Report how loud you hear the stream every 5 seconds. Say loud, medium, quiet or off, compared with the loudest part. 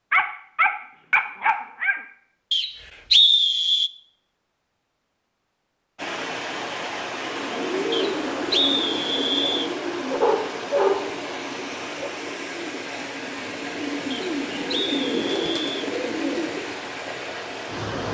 off, loud, loud, loud.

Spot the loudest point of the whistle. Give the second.
3 s.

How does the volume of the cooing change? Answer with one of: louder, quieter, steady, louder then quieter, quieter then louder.
quieter then louder.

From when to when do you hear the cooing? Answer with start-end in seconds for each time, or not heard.
7.2-16.8.